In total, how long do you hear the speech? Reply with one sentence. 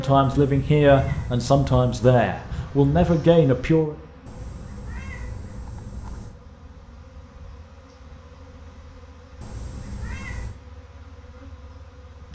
The speech can be heard for 4 seconds in total.